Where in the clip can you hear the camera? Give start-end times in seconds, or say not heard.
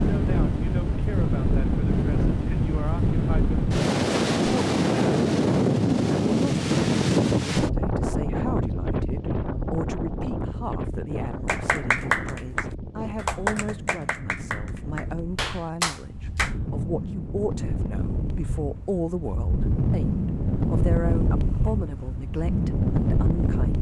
not heard.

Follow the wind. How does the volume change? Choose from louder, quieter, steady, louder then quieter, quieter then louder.
quieter then louder.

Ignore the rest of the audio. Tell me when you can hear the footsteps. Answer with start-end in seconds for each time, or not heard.
not heard.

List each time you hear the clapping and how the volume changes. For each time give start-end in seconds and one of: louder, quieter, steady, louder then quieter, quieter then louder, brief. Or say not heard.
11.4-16.6 quieter then louder.